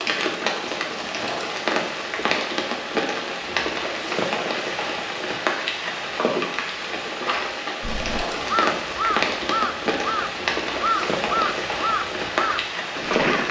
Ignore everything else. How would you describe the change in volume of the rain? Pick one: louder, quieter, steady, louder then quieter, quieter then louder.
steady.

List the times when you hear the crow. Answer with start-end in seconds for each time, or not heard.
7.8-13.4.